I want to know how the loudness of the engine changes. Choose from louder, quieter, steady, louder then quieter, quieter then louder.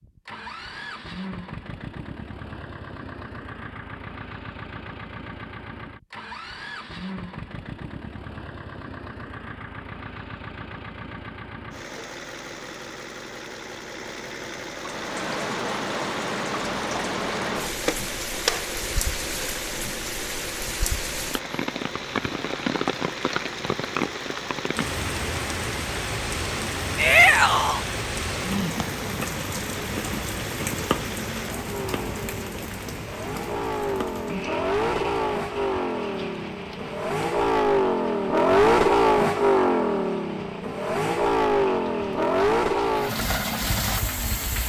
louder.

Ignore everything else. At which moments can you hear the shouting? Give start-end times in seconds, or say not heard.
26.9-27.8.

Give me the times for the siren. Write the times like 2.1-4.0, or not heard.
not heard.